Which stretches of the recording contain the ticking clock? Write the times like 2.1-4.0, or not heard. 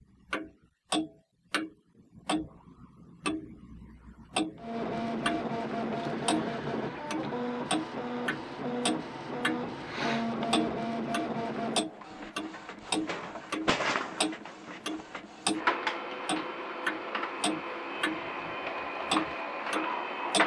0.3-5.5, 6.2-15.7, 16.2-20.4.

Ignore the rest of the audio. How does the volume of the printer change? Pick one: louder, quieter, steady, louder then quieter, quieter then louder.
steady.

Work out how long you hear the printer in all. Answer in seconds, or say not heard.
16 s.